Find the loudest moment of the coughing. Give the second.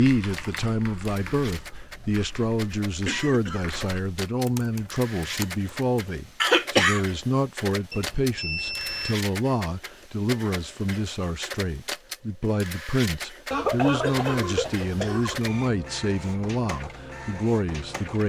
7 s.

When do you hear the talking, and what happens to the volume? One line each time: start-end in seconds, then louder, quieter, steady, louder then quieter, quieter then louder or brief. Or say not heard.
0.0-18.2 steady.